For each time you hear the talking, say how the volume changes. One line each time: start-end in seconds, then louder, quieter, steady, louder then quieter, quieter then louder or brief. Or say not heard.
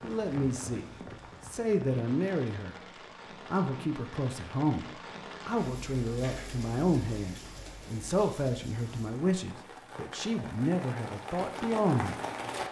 0.0-0.8 brief
1.4-2.8 brief
3.5-12.6 steady.